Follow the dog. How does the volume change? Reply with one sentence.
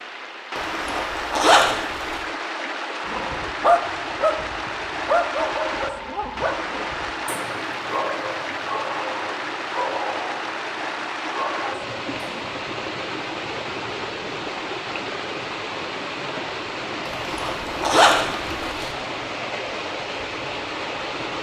The volume of the dog goes down.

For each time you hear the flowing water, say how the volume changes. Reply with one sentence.
You can hear the flowing water from 0.0 to 21.3 s, at a steady volume.